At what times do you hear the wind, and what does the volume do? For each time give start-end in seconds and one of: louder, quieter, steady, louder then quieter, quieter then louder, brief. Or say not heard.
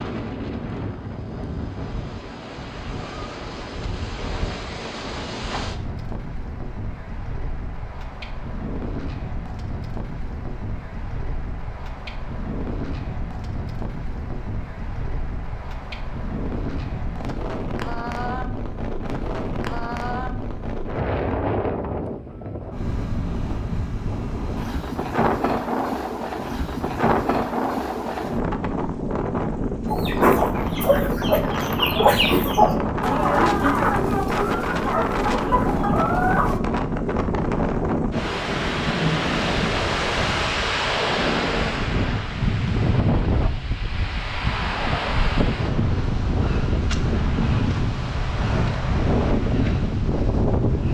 0.0-50.8 louder.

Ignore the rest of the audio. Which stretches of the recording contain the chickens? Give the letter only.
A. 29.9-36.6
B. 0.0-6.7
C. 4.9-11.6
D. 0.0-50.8
A.